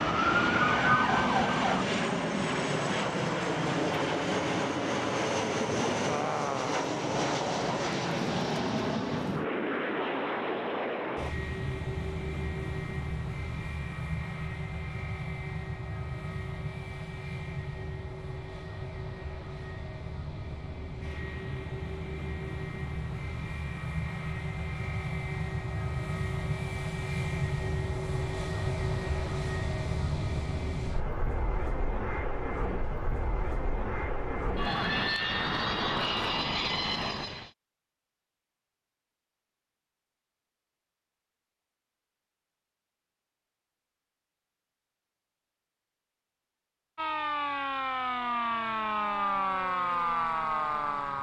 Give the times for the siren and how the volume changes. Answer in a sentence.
You can hear the siren briefly from 0.0 to 1.9 s; and from 47.0 to 51.1 s, at a steady volume.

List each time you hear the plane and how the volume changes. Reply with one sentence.
The plane can be heard from 0.0 to 37.5 s, getting quieter then louder.